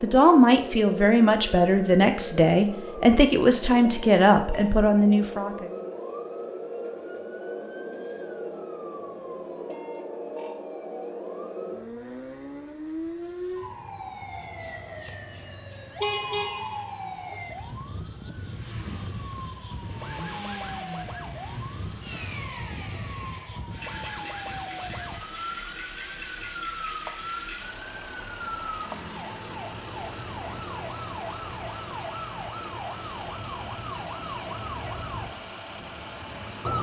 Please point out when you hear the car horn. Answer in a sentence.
You can hear the car horn from 16.0 to 16.9 s.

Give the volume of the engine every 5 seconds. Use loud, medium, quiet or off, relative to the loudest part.
off, off, off, medium, loud, loud, loud, loud.